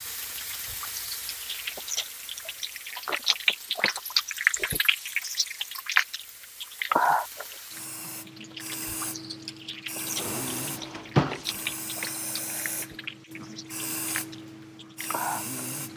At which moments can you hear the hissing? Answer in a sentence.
The hissing can be heard from 0.0 to 15.9 s.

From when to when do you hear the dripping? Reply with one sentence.
The dripping can be heard from 0.1 to 15.9 s.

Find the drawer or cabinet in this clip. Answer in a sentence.
The drawer or cabinet can be heard from 10.2 to 11.7 s.